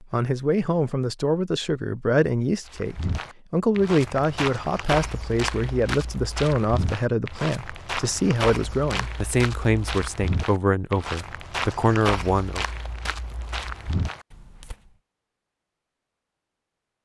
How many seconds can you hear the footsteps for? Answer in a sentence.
You can hear the footsteps for 12 seconds altogether.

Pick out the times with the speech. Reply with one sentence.
You can hear the speech from 0.0 to 12.7 s.